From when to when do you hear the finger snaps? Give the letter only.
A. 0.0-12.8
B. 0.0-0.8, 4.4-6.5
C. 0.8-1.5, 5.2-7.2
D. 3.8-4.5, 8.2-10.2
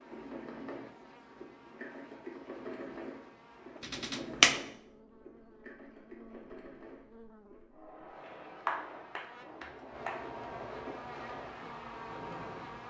D.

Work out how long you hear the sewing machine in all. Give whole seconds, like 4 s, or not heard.
13 s.